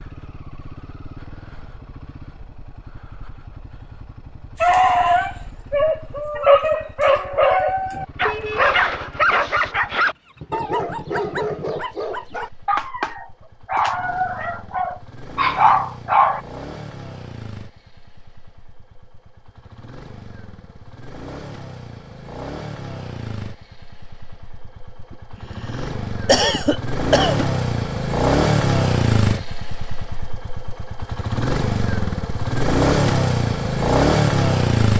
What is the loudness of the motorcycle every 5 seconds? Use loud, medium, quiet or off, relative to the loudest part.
quiet, quiet, quiet, quiet, quiet, loud, loud.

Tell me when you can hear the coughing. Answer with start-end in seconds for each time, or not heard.
26.2-27.4.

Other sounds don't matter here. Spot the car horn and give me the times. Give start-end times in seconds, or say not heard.
8.2-8.8.